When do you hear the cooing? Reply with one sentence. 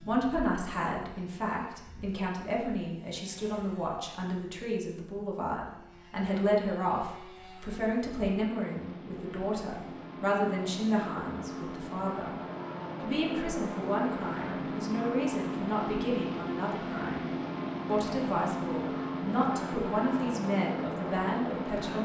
You can't hear the cooing here.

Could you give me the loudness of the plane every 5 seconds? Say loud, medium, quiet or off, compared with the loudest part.
quiet, quiet, loud, loud, loud.